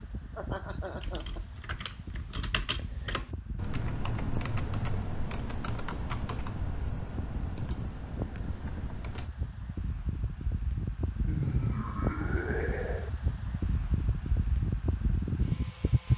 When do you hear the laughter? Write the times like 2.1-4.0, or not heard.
0.3-1.4, 11.2-13.1.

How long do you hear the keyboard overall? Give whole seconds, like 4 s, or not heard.
8 s.